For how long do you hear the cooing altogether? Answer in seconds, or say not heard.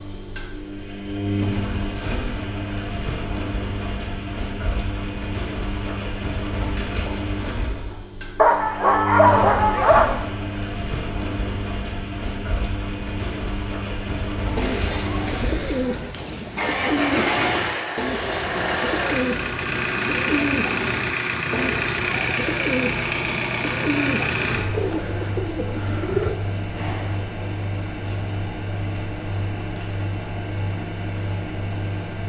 12 s.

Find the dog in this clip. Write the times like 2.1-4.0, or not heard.
8.3-10.2.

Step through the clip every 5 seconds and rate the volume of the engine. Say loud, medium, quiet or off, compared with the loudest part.
medium, medium, medium, loud, loud, medium, medium.